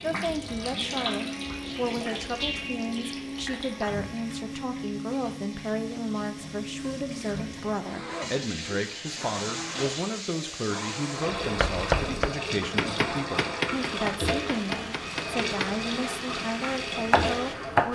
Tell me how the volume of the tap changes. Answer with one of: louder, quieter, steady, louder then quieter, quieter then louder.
quieter then louder.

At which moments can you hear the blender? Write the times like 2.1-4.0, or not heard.
0.0-17.9.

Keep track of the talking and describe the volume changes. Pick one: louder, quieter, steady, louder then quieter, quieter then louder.
steady.